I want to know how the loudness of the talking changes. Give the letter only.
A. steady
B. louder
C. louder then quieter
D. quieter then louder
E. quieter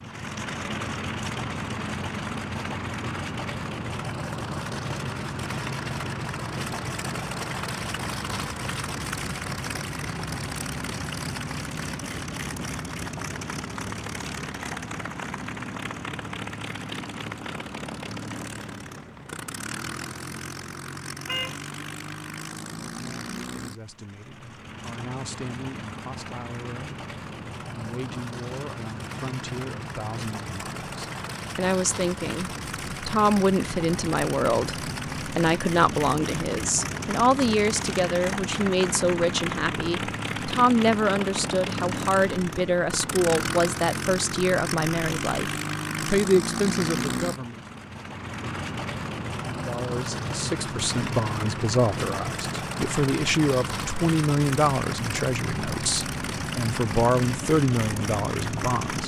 B.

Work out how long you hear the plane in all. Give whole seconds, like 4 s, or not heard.
59 s.